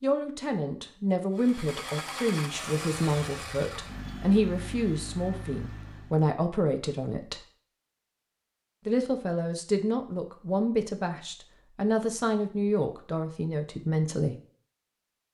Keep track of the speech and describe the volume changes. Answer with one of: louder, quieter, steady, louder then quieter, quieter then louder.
steady.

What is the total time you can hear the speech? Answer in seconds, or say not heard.
13 s.